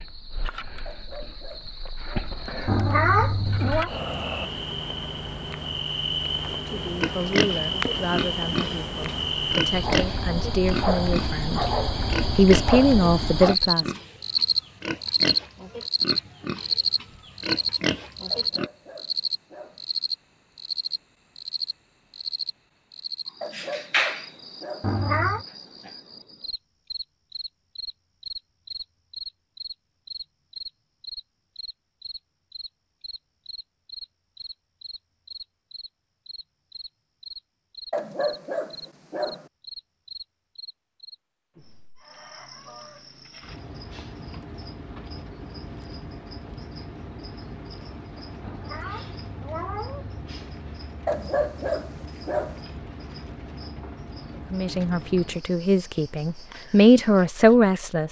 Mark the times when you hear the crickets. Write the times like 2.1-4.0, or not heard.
0.0-58.0.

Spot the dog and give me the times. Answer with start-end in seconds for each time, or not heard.
0.8-2.3, 18.3-19.9, 23.4-24.9, 37.9-39.5, 51.0-52.6.